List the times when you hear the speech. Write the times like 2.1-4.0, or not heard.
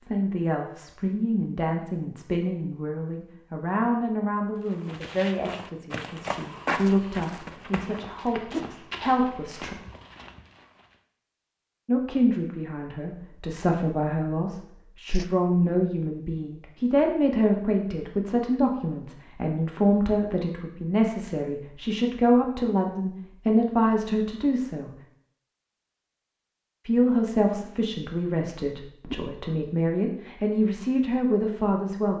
0.0-9.8, 11.8-24.9, 26.9-32.1.